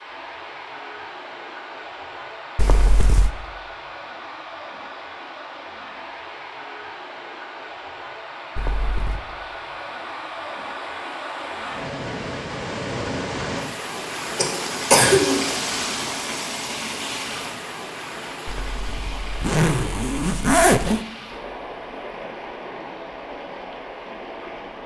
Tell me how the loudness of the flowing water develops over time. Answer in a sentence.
The volume of the flowing water goes up, then down.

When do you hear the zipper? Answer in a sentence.
You can hear the zipper from 2.5 to 3.3 s, from 8.6 to 9.2 s and from 18.4 to 21.0 s.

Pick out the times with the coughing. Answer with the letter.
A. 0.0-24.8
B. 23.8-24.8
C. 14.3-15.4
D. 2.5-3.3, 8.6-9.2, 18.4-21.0
C.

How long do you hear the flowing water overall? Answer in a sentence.
You can hear the flowing water for 25 seconds altogether.